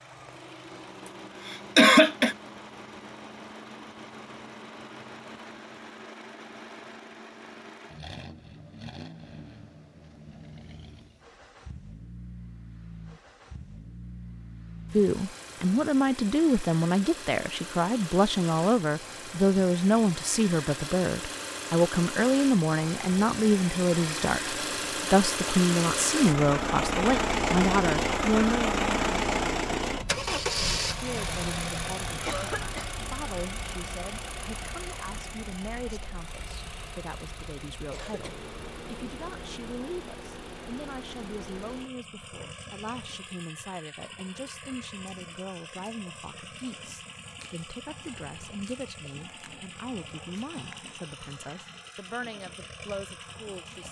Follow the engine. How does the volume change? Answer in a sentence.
The loudness of the engine goes up, then down.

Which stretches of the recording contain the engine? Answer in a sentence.
The engine can be heard from 0.0 to 53.8 s.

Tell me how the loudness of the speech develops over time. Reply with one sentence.
The loudness of the speech goes down.